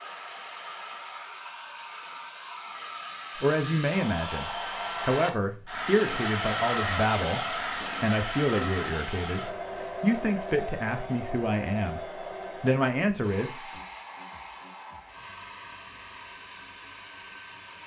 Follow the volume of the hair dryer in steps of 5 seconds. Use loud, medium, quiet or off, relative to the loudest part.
medium, loud, medium, quiet.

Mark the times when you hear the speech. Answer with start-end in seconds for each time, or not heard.
3.4-12.0, 12.6-13.6.